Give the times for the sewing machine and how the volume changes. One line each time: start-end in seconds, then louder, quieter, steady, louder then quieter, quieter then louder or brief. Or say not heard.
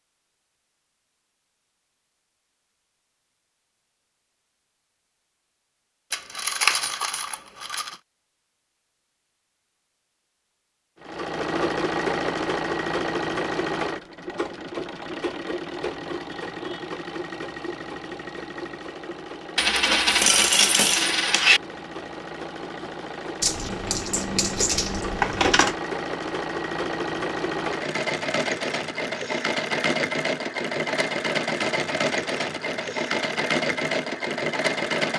11.0-35.1 quieter then louder.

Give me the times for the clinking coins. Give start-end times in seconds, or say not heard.
6.1-8.0, 19.6-21.6, 23.4-25.8.